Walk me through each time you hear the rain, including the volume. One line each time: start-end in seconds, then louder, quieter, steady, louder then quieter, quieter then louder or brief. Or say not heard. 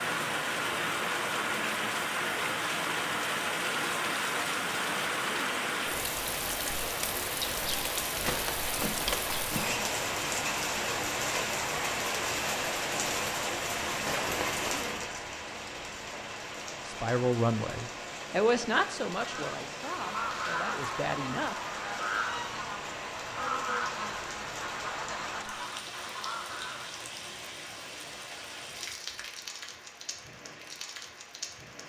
0.0-31.8 quieter.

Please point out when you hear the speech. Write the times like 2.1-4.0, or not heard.
16.9-21.6.